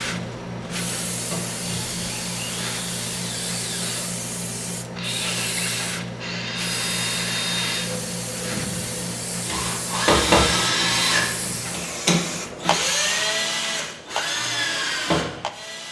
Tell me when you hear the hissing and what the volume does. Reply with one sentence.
You can hear the hissing from 0.0 to 15.8 s, at a steady volume.